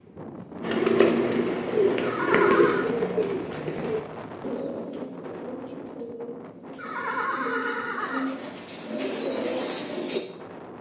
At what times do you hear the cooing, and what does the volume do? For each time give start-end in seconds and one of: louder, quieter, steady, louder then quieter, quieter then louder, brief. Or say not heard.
0.6-10.2 quieter then louder.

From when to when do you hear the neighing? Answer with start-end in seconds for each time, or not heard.
2.0-2.9, 6.8-8.3.